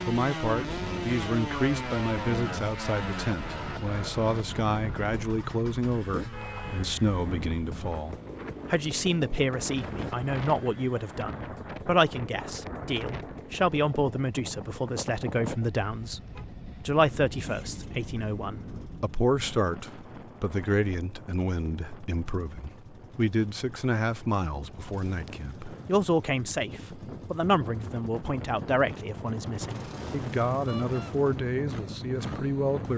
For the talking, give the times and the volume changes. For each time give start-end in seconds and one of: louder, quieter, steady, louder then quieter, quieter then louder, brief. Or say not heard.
0.1-16.2 steady
16.9-32.9 steady.